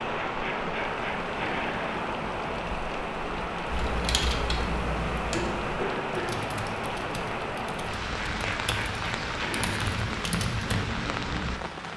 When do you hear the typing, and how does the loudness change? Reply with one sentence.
The typing can be heard from 3.6 to 10.8 s, getting quieter then louder.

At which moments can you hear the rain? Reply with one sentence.
The rain can be heard from 0.0 to 11.9 s.